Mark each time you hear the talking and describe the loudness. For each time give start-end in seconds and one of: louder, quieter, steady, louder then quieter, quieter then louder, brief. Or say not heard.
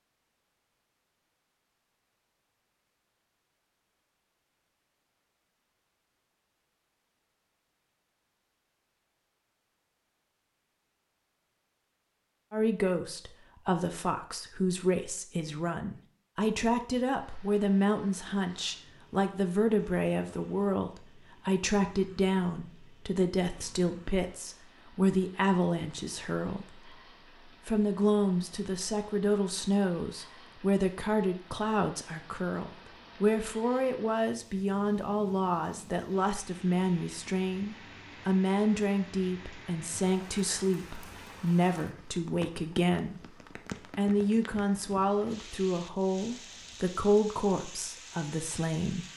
12.5-49.0 steady.